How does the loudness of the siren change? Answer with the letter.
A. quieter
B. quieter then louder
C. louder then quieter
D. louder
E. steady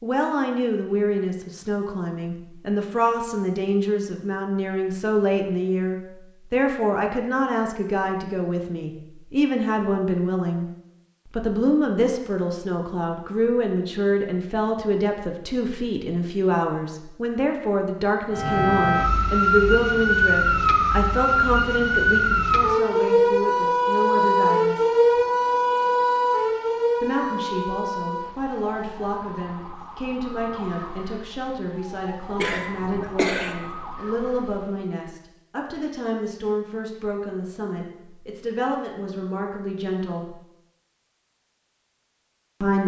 A.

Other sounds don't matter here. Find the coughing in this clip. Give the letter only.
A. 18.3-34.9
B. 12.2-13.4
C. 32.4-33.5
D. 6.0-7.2
C.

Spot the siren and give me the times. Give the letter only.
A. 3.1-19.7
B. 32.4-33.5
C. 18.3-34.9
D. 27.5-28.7
C.